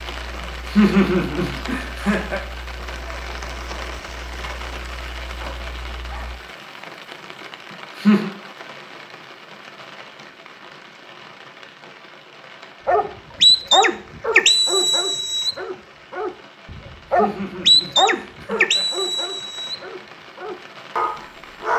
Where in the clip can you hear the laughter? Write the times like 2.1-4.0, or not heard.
0.4-2.4, 7.7-8.3, 17.1-18.9.